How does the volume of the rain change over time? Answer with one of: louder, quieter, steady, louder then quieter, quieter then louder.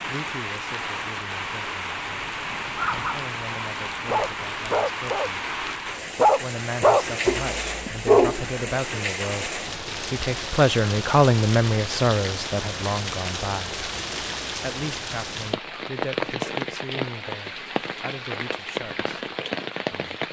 steady.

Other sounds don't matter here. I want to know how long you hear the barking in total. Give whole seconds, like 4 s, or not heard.
4 s.